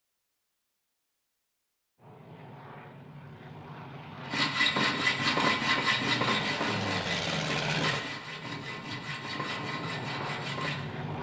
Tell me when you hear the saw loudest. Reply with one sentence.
The loudest moment of the saw is at 5 seconds.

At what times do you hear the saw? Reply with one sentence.
You can hear the saw from 4.2 to 10.8 s.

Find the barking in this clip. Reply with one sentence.
The barking can't be heard in this clip.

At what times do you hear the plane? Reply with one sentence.
You can hear the plane from 2.0 to 11.1 s.